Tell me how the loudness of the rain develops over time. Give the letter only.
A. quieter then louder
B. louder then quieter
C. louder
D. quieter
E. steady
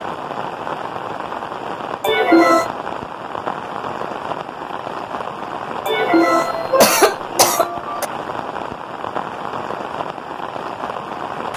E.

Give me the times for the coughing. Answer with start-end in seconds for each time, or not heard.
2.0-2.7, 5.8-8.1.